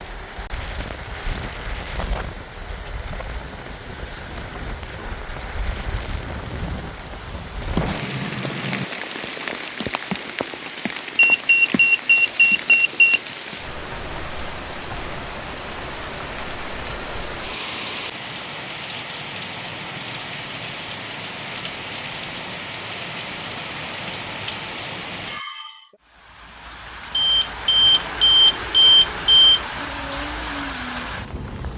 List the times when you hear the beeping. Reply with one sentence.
The beeping can be heard from 7.8 to 8.8 s, from 11.2 to 13.2 s and from 27.1 to 29.6 s.